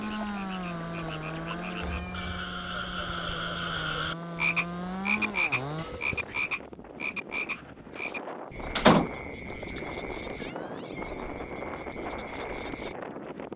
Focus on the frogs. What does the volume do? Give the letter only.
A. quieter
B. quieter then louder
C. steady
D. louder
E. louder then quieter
E.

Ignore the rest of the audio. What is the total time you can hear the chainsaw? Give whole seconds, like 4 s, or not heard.
6 s.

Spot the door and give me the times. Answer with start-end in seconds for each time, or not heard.
8.0-9.1.